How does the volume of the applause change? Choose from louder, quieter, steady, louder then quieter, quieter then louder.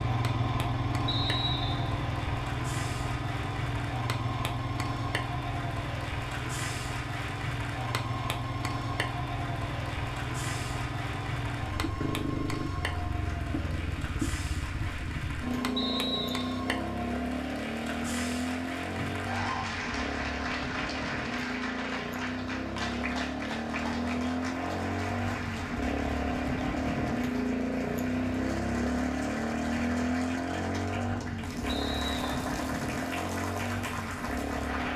steady.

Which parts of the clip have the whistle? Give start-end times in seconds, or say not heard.
1.1-1.9, 15.8-16.6, 31.6-32.4.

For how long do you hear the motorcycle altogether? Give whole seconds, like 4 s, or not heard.
35 s.